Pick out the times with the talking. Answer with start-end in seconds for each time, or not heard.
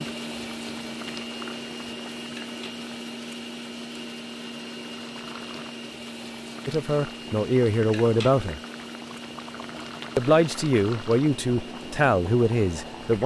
6.7-8.6, 10.2-13.2.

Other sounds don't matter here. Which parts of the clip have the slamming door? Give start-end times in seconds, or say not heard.
not heard.